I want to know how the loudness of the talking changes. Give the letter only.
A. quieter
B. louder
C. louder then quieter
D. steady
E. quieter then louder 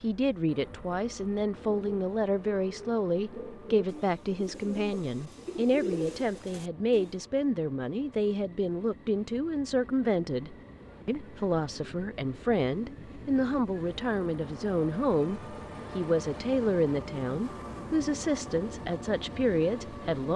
D.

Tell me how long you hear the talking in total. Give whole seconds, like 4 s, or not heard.
20 s.